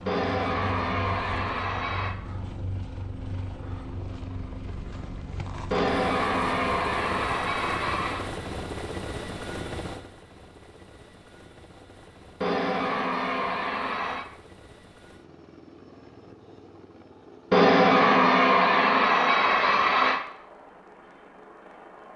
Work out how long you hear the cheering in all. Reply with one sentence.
You can hear the cheering for 9 seconds altogether.